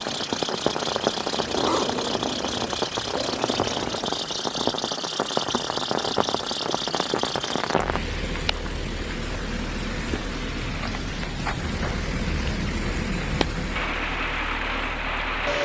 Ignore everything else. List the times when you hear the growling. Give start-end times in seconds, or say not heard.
1.4-4.1.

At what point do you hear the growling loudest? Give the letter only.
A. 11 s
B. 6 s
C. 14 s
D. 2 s
D.